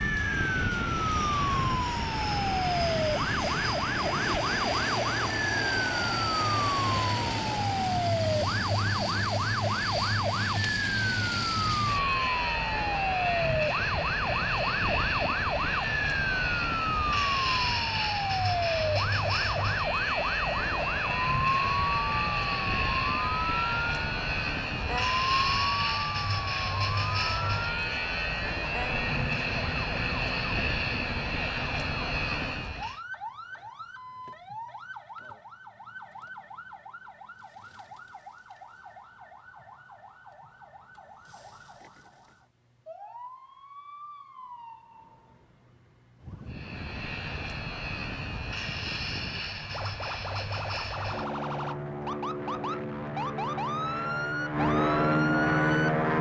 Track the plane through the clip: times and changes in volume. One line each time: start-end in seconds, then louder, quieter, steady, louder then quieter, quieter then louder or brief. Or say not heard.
0.0-33.0 steady
46.5-56.1 louder.